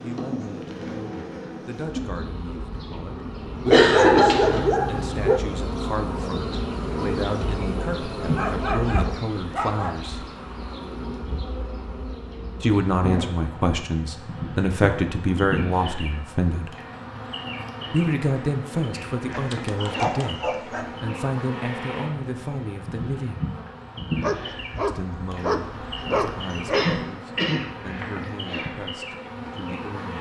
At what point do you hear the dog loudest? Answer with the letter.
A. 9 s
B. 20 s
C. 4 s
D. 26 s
C.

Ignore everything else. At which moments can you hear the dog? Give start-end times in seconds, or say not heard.
3.6-5.4, 8.3-10.0, 19.3-20.9, 24.2-27.1.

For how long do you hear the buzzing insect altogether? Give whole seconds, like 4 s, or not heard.
30 s.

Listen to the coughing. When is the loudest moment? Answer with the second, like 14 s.
4 s.